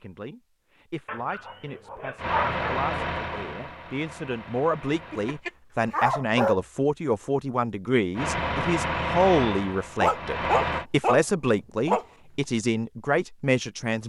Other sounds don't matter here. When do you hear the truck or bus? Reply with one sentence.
The truck or bus can be heard from 2.1 to 5.4 s and from 8.2 to 10.8 s.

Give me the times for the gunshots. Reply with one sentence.
The gunshots can't be heard in this clip.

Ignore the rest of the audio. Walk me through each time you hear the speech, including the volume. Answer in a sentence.
The speech can be heard from 0.0 to 14.0 s, getting louder.